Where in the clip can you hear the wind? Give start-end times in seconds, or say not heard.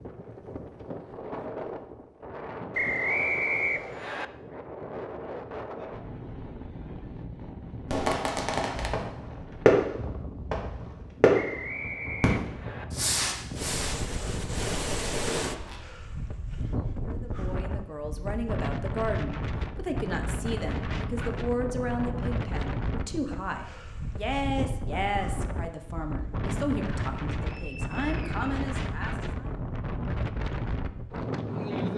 0.0-31.9.